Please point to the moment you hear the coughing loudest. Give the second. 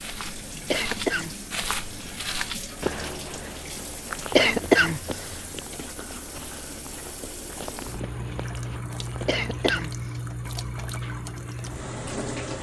5 s.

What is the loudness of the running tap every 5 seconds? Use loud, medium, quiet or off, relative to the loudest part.
medium, loud, loud.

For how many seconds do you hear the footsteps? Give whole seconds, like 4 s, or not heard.
10 s.